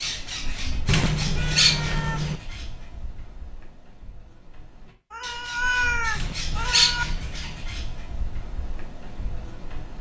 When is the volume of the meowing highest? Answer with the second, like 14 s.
6 s.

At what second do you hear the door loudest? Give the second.
1 s.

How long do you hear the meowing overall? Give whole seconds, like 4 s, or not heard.
4 s.